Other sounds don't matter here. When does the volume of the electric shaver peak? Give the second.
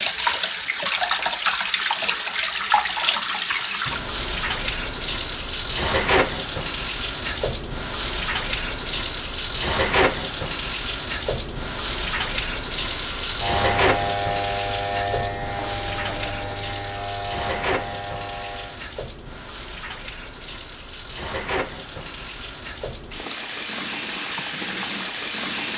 14 s.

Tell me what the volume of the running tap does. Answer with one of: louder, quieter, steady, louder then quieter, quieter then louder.
quieter.